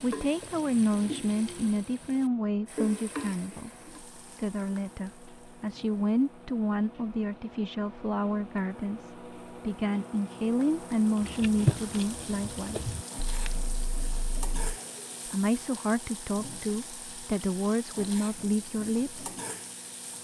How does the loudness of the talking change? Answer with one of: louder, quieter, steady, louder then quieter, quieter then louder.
steady.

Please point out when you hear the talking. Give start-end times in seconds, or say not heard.
0.0-12.9, 15.2-19.2.